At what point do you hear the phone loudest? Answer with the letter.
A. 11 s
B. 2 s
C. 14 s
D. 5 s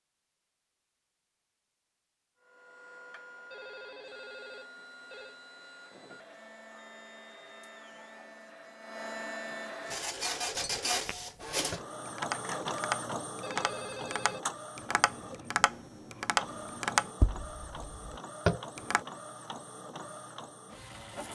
C.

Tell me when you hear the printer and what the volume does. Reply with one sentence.
The printer can be heard from 2.4 to 21.3 s, getting louder then quieter.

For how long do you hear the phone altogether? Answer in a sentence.
The phone can be heard for 3 seconds in total.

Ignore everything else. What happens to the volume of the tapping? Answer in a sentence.
The loudness of the tapping goes up.